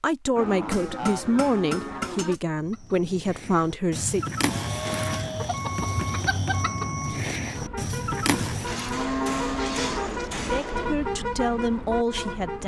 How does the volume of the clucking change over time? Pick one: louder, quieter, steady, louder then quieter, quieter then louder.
louder.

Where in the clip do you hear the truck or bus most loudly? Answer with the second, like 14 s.
11 s.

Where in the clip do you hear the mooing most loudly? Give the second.
9 s.